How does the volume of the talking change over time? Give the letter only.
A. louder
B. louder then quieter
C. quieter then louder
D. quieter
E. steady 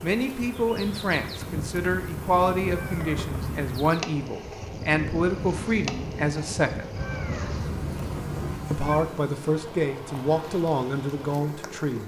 E.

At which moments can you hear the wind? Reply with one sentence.
You can hear the wind from 0.1 to 8.7 s.